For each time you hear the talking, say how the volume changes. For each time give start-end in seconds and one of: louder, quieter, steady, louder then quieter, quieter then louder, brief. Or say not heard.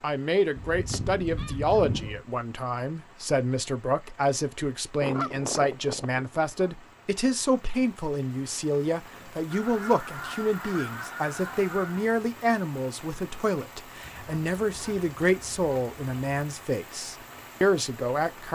0.0-18.4 steady.